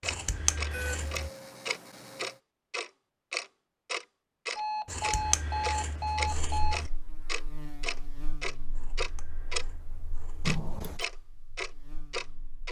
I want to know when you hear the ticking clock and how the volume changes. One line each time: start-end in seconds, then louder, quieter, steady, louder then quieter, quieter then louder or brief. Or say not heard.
0.0-9.7 steady
10.4-12.6 brief.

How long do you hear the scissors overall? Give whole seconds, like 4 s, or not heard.
5 s.